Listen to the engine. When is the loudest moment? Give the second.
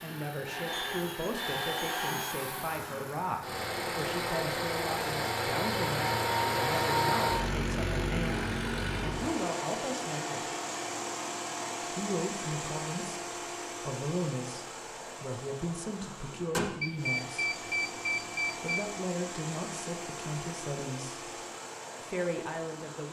7 s.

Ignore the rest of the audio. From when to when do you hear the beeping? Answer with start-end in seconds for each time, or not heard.
0.7-2.4, 16.8-18.9.